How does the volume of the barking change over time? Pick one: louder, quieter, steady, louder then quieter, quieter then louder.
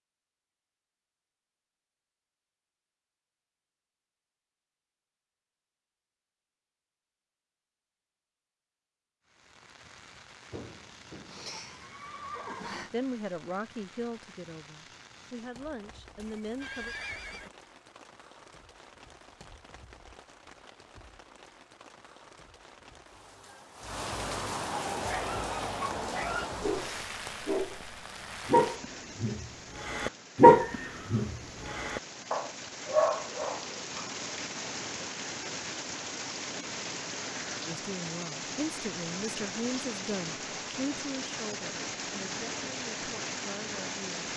louder then quieter.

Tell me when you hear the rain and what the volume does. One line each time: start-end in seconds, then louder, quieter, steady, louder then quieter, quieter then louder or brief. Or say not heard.
9.2-44.3 louder.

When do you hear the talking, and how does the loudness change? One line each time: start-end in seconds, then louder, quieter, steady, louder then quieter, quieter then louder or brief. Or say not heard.
12.9-16.9 quieter then louder
37.6-44.2 quieter.